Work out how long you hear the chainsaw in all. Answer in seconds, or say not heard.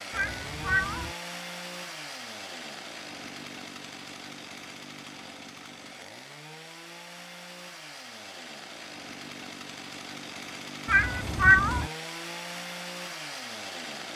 14 s.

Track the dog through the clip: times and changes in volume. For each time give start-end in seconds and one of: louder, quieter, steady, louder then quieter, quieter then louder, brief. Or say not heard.
not heard.